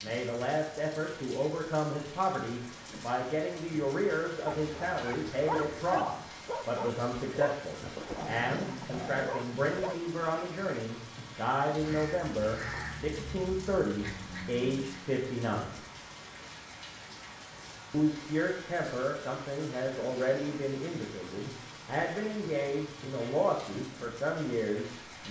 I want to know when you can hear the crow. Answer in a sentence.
You can hear the crow from 11.8 to 15.2 s.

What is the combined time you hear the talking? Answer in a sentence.
You can hear the talking for 23 seconds altogether.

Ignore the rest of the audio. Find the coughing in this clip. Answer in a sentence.
You can't hear the coughing here.